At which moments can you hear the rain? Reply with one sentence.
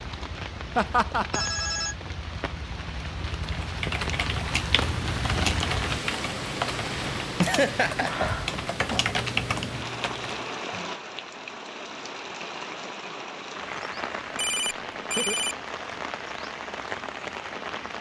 The rain can be heard from 0.0 to 17.9 s.